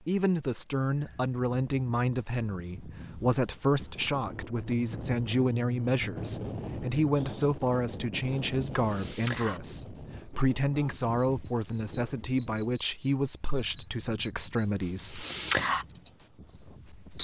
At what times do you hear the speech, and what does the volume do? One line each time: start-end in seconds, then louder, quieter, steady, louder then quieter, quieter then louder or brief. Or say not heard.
0.1-15.2 steady.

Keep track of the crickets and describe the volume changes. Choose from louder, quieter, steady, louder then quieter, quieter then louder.
louder.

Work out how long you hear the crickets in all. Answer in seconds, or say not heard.
13 s.